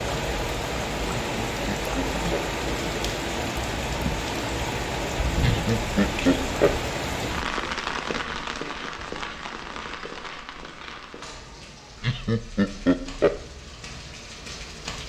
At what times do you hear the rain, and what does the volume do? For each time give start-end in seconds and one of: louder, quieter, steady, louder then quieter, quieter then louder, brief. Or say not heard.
0.0-15.0 quieter.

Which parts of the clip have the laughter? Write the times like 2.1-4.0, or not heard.
1.2-2.5, 5.4-6.8, 12.0-13.4.